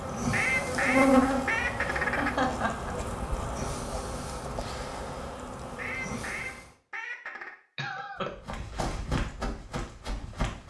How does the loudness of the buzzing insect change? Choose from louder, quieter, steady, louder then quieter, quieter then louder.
quieter.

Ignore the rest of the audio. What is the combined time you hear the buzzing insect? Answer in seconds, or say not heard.
7 s.